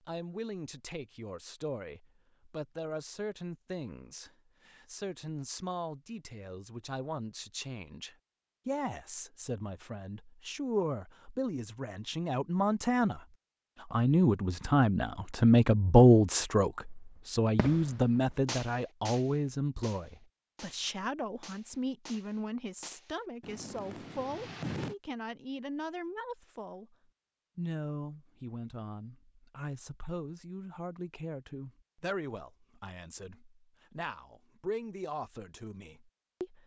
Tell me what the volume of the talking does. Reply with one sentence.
The volume of the talking goes up, then down.